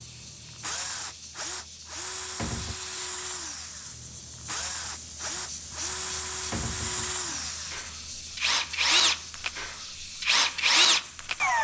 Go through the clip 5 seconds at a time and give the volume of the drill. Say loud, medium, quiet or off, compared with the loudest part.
quiet, medium, loud.